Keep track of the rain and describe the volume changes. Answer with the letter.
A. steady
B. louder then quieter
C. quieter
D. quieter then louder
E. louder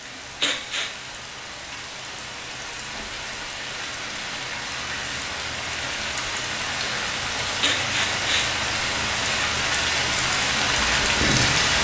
E.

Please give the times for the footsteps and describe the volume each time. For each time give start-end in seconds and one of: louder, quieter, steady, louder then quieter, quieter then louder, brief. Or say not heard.
not heard.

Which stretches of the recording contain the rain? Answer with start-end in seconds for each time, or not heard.
0.0-11.7.